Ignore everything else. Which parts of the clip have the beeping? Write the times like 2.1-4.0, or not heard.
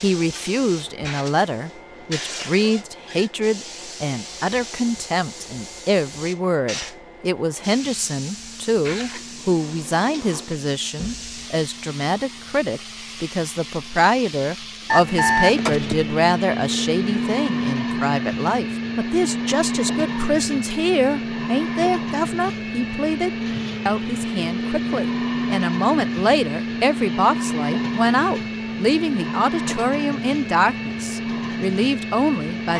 14.8-16.1.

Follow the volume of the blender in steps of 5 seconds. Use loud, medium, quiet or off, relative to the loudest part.
quiet, quiet, quiet, loud, loud, loud, loud.